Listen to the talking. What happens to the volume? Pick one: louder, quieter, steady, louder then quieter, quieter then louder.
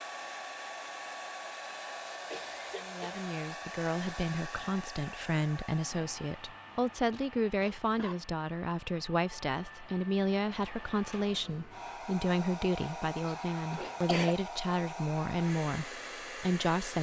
steady.